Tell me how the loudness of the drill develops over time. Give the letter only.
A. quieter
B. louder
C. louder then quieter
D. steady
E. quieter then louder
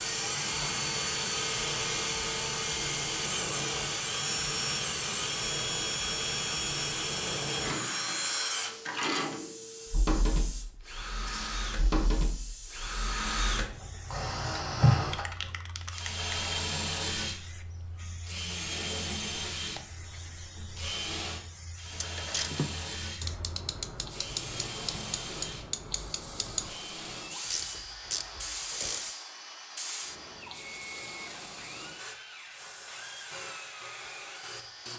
A.